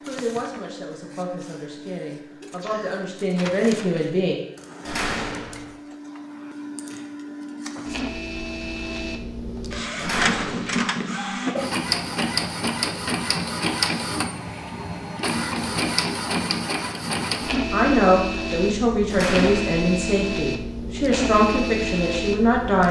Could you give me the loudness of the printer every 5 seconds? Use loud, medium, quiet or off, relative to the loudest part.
quiet, medium, loud, loud, loud.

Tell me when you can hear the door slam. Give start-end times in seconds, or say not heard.
4.8-5.7, 9.9-10.8, 19.1-19.7.